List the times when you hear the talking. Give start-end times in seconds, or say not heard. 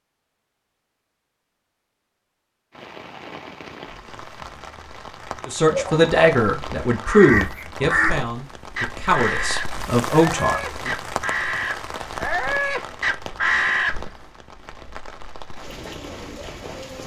5.5-10.9.